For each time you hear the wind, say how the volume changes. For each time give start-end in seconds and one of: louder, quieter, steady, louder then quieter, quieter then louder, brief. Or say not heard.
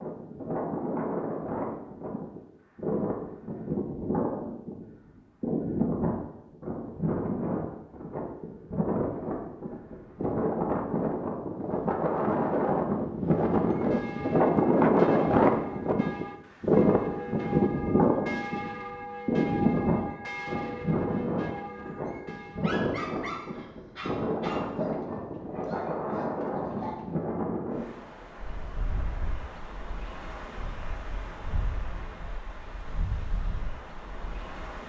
0.0-34.8 louder then quieter.